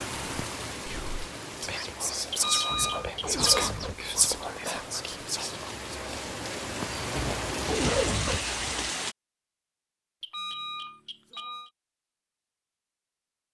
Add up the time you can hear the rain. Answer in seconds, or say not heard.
9 s.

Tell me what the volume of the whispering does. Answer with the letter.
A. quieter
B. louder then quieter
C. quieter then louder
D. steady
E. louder
B.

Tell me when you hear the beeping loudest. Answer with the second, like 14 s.
3 s.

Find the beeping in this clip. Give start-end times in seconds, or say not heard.
2.3-3.7, 10.2-11.7.